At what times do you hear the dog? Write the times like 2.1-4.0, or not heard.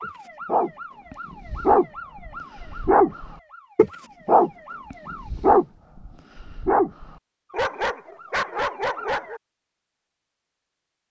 0.0-9.4.